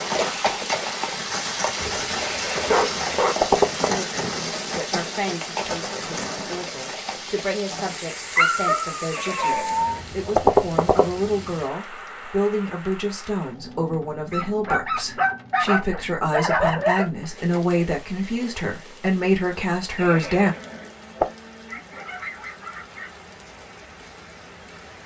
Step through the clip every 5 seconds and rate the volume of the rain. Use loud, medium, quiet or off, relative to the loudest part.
loud, medium, quiet, quiet, quiet.